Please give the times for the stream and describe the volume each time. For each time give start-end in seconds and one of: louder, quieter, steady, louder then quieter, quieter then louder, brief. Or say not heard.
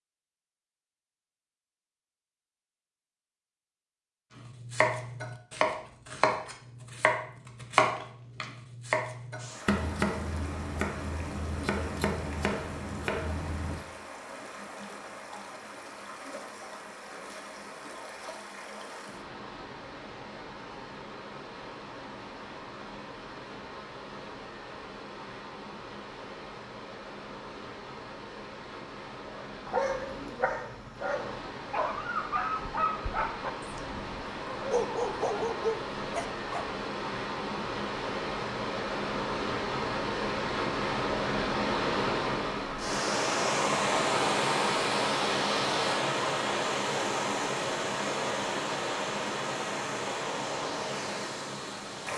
9.3-52.1 louder.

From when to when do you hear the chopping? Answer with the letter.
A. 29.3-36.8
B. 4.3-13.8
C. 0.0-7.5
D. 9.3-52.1
B.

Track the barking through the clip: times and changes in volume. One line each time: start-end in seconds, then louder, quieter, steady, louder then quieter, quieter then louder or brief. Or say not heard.
29.3-36.8 steady.